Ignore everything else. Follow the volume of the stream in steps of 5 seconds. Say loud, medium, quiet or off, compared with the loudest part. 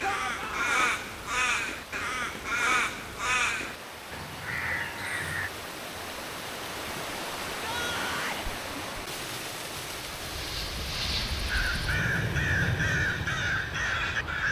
medium, loud, medium.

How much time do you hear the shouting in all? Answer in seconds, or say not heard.
2 s.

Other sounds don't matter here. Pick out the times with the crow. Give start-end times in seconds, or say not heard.
0.0-5.5, 11.4-14.4.